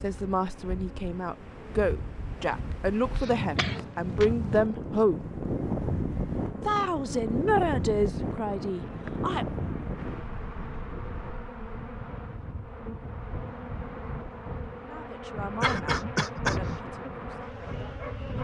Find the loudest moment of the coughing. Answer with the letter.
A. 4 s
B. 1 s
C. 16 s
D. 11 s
C.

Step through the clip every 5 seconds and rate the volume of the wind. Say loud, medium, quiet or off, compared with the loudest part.
medium, loud, medium, medium.